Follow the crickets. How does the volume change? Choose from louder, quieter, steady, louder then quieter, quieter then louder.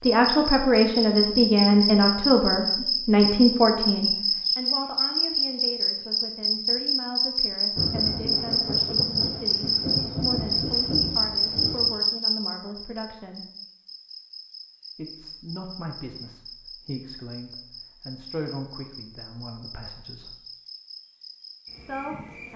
quieter.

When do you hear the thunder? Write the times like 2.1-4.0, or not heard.
7.8-12.0.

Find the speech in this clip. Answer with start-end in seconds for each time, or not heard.
0.0-13.4, 14.9-20.4, 21.8-22.5.